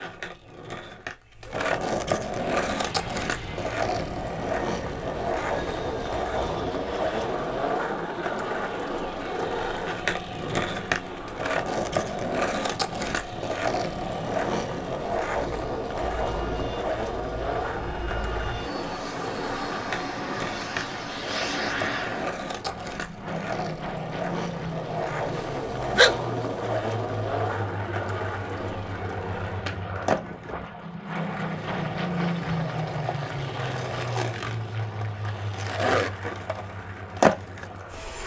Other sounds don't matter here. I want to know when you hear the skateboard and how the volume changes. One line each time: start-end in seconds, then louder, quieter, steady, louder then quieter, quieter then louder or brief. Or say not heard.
0.0-38.2 steady.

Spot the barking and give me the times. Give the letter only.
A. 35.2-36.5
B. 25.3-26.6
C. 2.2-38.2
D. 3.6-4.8
B.